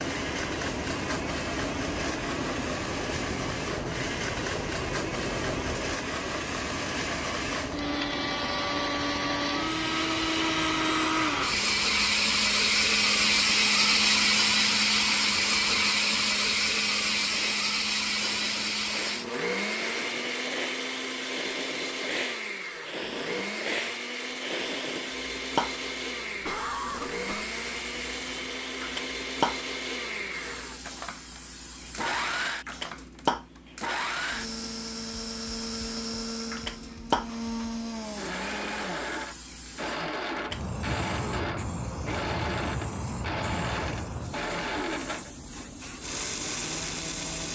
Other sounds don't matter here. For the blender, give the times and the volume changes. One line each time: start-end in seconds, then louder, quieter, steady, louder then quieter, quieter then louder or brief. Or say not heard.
0.0-47.5 louder then quieter.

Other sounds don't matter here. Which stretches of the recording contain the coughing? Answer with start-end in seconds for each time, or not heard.
26.4-27.4.